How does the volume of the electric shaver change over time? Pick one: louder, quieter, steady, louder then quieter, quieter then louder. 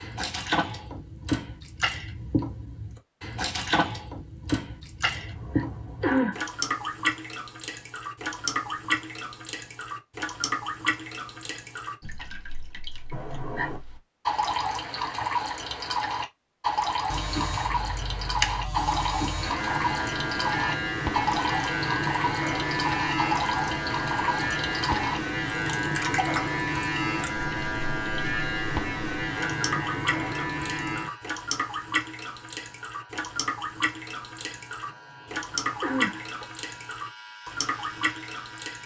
quieter.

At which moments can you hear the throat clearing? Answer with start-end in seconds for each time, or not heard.
5.1-6.4, 13.1-13.8, 34.9-36.5.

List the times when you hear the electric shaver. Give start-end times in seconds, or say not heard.
17.1-38.8.